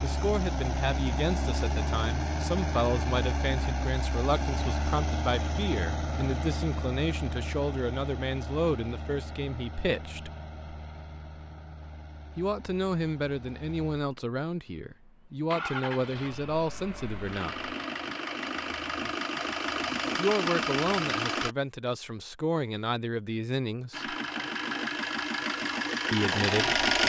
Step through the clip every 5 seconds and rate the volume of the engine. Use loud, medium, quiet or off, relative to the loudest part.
medium, medium, quiet, medium, loud, loud.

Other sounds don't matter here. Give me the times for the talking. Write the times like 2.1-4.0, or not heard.
0.0-10.3, 12.3-17.7, 20.1-24.1, 26.1-26.8.